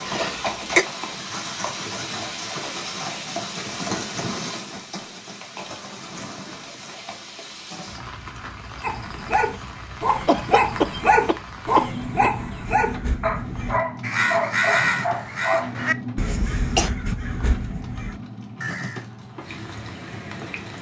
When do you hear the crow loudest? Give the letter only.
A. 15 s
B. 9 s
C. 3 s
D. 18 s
A.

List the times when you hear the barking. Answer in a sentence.
The barking can be heard from 8.8 to 15.7 s.